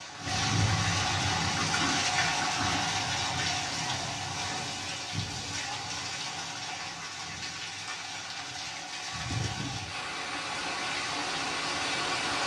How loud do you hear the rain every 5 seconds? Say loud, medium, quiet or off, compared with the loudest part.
loud, medium, loud.